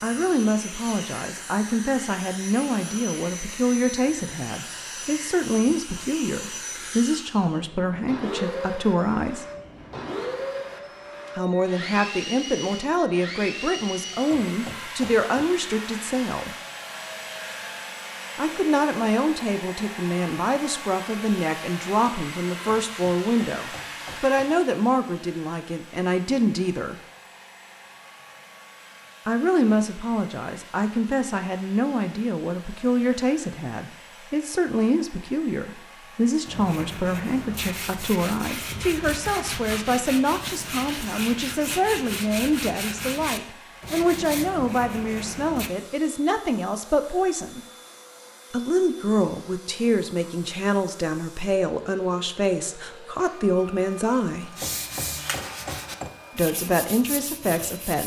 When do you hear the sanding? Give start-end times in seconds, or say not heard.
36.5-45.7, 54.5-58.0.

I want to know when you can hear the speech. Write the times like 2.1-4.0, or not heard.
0.0-9.4, 11.3-16.6, 18.4-26.9, 29.2-47.6, 48.5-54.5, 56.4-58.0.